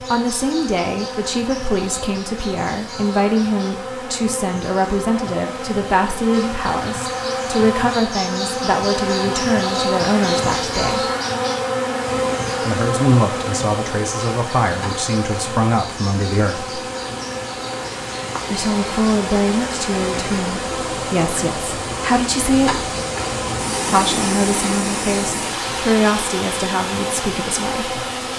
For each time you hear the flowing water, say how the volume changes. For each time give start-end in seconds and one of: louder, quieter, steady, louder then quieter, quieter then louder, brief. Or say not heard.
11.9-28.3 louder.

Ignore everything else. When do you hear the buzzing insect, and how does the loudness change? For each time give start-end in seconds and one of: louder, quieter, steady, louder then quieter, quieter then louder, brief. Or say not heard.
0.0-28.3 louder then quieter.